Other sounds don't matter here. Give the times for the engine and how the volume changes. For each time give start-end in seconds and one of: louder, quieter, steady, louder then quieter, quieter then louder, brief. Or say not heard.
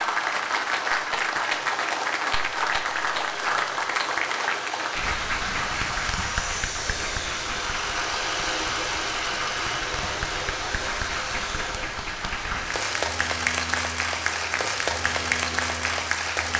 0.0-16.5 louder then quieter.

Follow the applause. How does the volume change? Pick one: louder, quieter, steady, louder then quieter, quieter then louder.
quieter then louder.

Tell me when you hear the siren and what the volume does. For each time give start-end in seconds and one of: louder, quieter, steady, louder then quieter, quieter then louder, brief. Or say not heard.
not heard.